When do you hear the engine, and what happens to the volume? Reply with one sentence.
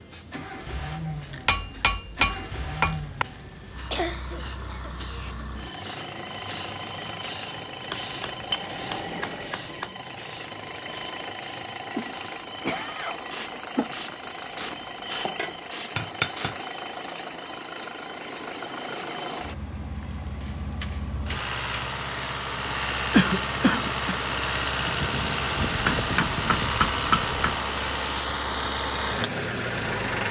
The engine can be heard from 0.1 to 30.2 s, getting louder.